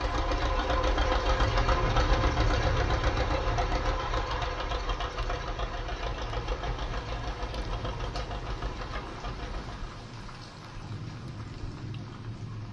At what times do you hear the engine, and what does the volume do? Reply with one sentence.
You can hear the engine from 0.0 to 10.1 s, getting quieter.